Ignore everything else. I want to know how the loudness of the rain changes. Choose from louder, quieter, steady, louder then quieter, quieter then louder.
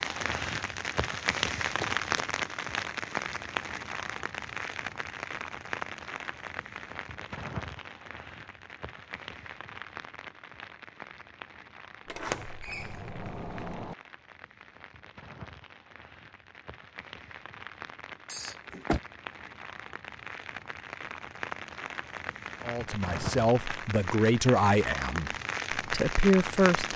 quieter then louder.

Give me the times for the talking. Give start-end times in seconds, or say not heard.
22.6-26.9.